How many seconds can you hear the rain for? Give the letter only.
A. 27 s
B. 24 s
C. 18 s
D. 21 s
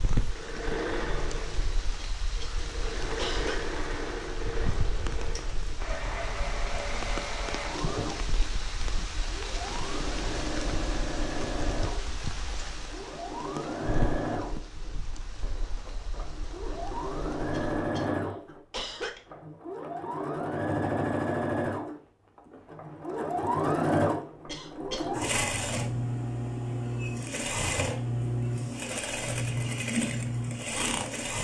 C.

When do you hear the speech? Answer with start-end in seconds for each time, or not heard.
not heard.